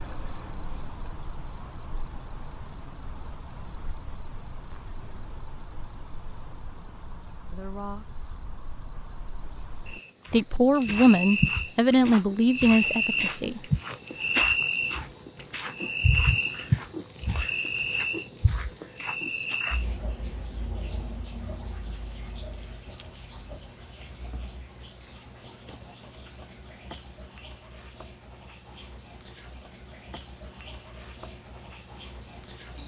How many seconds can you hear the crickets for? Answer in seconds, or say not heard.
33 s.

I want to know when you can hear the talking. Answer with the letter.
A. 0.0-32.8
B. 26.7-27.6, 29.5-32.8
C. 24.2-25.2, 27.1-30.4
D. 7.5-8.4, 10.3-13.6
D.